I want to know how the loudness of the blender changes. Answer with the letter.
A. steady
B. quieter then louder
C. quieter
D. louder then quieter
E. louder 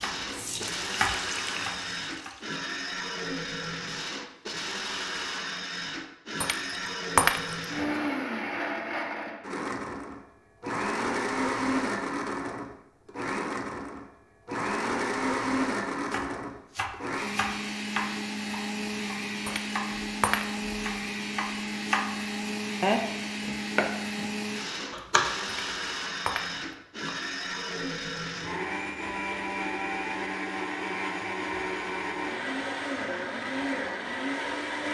A.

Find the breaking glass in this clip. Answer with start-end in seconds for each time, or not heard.
6.4-7.7, 19.4-20.8, 25.4-26.6.